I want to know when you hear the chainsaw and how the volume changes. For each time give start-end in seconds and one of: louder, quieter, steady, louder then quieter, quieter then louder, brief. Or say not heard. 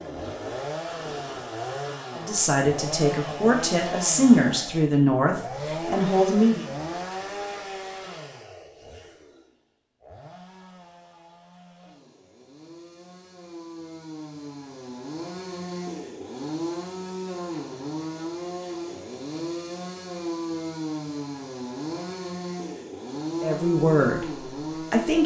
0.0-25.2 quieter then louder.